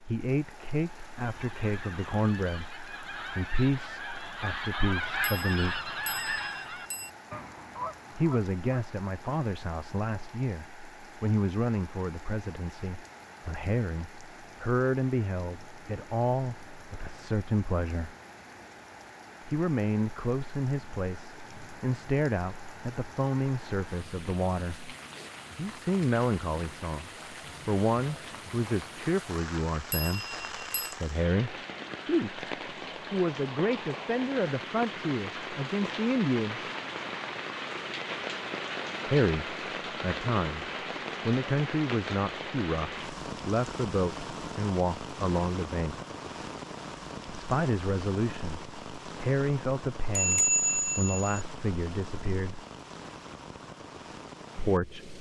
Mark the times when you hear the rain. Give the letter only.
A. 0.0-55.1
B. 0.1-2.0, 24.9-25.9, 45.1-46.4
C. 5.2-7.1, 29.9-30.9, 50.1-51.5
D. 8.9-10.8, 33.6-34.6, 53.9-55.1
A.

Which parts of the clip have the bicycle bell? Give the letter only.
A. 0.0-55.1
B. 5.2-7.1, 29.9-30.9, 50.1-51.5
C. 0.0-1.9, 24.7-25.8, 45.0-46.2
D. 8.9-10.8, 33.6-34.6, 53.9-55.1
B.